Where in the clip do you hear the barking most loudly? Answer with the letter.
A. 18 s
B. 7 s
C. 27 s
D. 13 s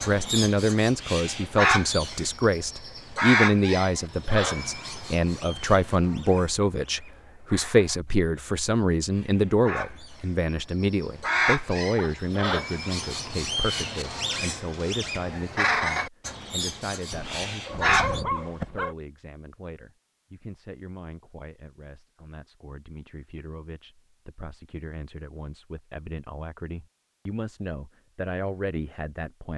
A.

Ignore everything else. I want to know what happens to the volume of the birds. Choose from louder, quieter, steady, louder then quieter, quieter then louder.
quieter then louder.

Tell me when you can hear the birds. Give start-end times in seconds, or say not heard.
0.0-18.2.